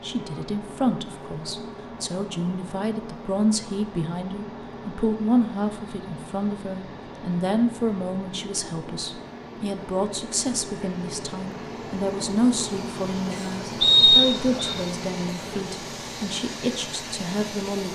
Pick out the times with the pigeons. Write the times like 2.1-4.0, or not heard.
not heard.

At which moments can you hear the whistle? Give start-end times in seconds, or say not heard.
13.8-14.8.